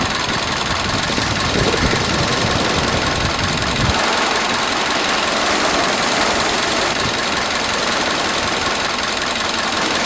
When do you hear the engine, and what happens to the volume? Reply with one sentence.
You can hear the engine from 0.0 to 10.0 s, at a steady volume.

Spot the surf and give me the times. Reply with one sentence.
The surf can be heard from 0.0 to 10.0 s.